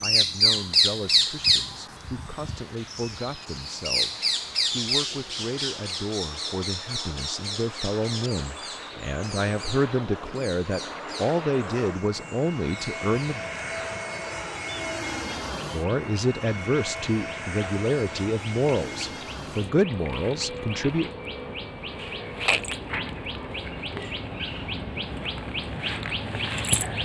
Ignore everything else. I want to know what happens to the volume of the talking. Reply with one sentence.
The volume of the talking goes up.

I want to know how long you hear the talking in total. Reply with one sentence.
The talking can be heard for 19 seconds in total.